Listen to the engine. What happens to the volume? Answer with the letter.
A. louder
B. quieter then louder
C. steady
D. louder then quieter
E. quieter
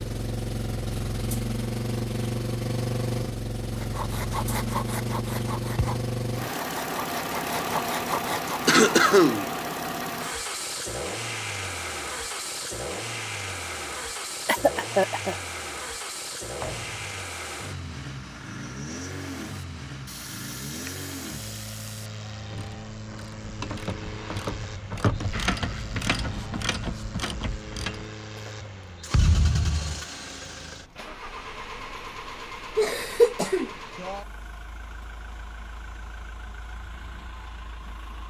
E.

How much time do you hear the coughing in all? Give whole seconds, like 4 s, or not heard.
3 s.